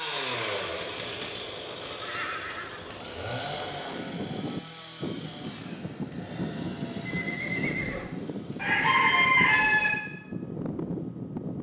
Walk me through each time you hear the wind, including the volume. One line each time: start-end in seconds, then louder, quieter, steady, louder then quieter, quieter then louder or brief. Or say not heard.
0.0-11.5 louder.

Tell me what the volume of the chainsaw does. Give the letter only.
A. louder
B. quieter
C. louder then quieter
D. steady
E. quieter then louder
B.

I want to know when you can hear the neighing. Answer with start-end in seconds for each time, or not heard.
1.9-3.1, 7.1-8.1.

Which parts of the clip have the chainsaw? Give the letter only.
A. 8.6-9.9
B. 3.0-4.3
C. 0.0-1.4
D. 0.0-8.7
D.